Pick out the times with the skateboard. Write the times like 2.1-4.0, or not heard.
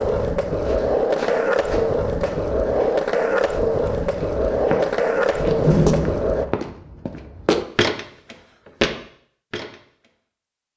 0.0-6.5.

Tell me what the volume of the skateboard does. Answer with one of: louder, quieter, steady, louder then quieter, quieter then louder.
steady.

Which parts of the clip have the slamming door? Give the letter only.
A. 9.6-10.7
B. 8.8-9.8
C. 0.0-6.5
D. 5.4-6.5
D.